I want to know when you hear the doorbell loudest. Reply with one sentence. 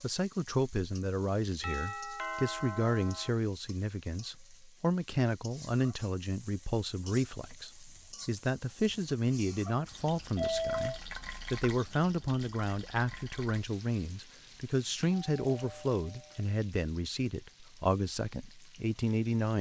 The volume of the doorbell peaks at 11 seconds.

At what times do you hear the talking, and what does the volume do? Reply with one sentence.
The talking can be heard from 0.0 to 19.5 s, at a steady volume.